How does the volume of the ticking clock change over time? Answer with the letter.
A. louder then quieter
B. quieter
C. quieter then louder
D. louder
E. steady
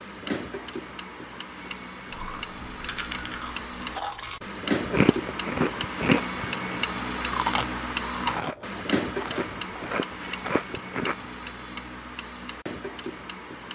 A.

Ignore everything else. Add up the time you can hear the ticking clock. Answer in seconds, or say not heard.
14 s.